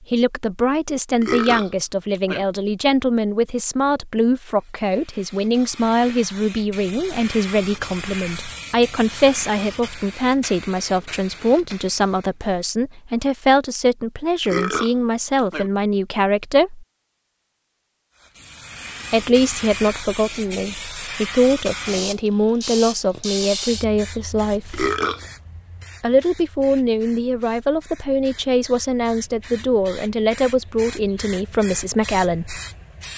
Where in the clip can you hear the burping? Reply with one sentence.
The burping can be heard from 1.2 to 2.5 s, from 14.4 to 15.7 s and from 24.7 to 25.2 s.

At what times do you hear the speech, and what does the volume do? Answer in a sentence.
You can hear the speech from 0.1 to 16.9 s, at a steady volume; from 19.1 to 24.9 s, at a steady volume; and from 26.0 to 32.6 s, at a steady volume.